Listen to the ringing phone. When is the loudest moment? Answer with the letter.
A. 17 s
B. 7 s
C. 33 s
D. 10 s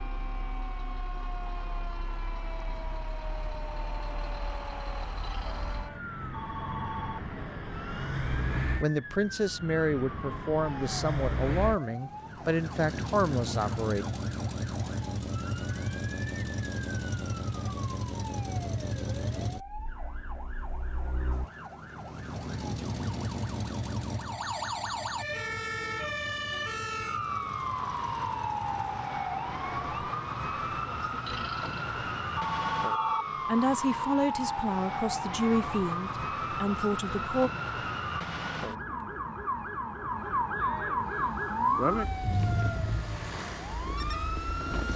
C.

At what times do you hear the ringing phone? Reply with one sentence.
The ringing phone can be heard from 5.2 to 7.2 s and from 31.2 to 33.2 s.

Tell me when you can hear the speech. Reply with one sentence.
The speech can be heard from 8.8 to 14.1 s and from 33.5 to 37.5 s.